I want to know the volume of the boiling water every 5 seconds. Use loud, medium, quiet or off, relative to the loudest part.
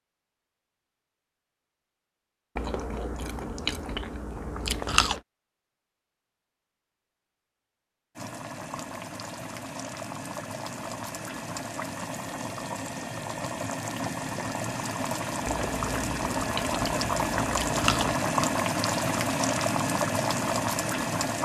off, medium, medium, loud, loud.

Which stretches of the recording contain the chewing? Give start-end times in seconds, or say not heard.
2.5-5.2, 15.4-18.2.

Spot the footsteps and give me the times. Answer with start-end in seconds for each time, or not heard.
not heard.